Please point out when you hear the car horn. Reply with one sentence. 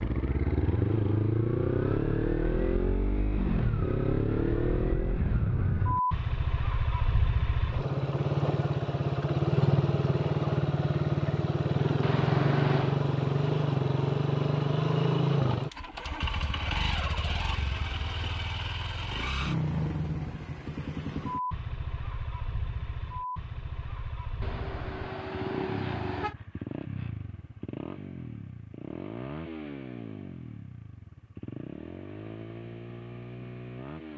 The car horn can be heard from 12.0 to 13.0 s and from 24.4 to 26.4 s.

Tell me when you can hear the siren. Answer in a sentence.
You can't hear the siren here.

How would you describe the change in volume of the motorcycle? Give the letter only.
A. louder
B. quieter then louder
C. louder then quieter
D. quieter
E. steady
D.